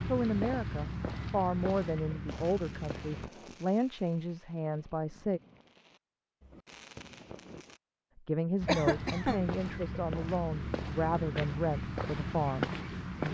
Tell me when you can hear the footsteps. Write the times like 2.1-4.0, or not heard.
0.0-3.3, 8.6-13.2.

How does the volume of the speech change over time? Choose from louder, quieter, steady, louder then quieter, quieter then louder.
steady.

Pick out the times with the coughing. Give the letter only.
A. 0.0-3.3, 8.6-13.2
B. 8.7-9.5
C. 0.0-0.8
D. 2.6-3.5
B.